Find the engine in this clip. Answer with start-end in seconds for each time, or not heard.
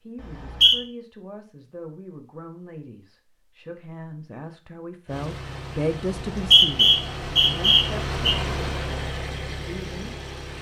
5.0-10.5.